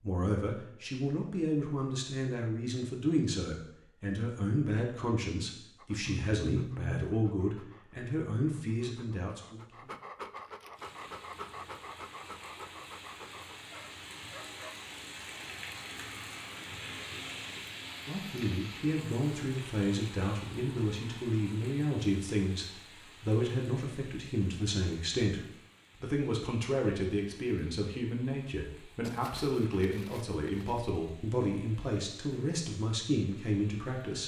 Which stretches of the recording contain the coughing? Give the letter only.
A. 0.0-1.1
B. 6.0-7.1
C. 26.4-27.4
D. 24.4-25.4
B.